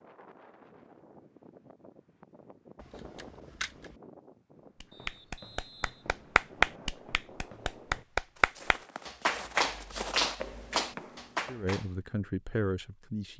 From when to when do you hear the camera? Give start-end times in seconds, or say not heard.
2.8-4.0.